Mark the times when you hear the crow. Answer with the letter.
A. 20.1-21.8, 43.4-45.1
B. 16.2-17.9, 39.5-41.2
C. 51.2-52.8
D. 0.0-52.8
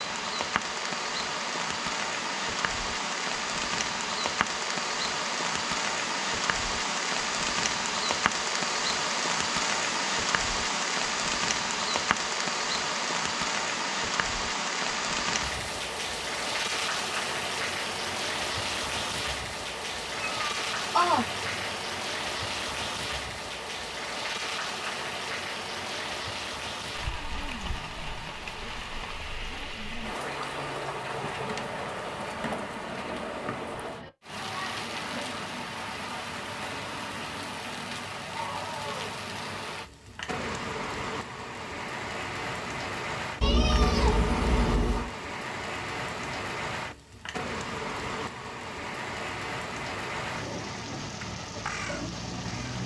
C.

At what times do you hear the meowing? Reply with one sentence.
You can hear the meowing from 20.1 to 21.8 s and from 43.4 to 45.1 s.